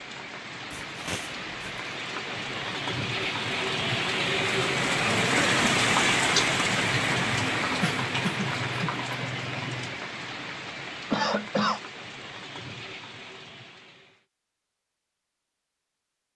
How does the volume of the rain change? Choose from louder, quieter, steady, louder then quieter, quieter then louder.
louder then quieter.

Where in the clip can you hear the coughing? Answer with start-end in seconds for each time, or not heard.
0.7-1.9, 7.8-8.9, 11.1-11.8.